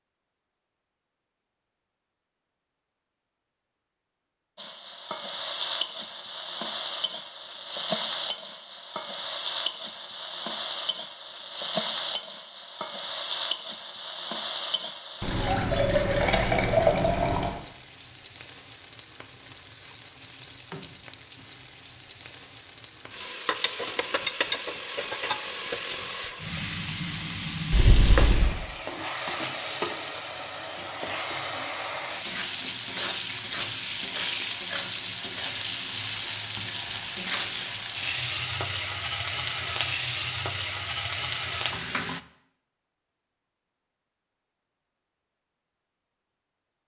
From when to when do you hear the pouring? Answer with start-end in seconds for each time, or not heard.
15.2-17.6, 27.7-28.6.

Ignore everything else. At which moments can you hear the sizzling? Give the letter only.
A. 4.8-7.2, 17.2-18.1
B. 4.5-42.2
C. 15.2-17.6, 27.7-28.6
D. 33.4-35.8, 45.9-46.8
B.